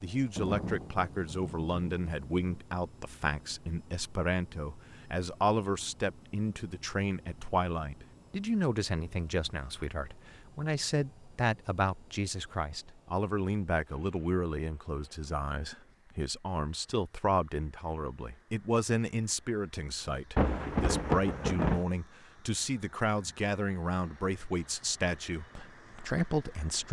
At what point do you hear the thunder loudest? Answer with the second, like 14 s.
21 s.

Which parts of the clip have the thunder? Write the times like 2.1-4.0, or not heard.
0.3-2.6, 20.4-21.8.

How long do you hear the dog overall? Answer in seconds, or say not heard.
not heard.